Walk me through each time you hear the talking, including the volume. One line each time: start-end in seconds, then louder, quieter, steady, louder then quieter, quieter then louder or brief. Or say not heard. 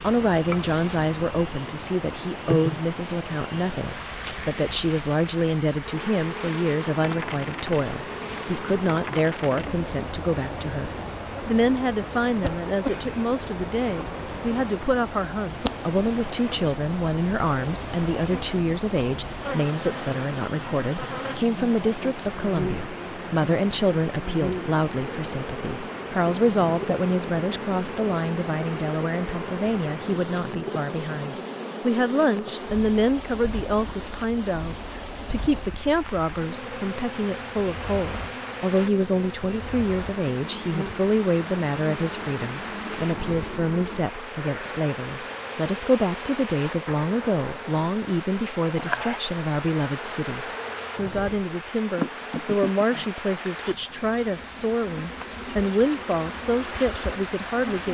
0.0-57.8 steady.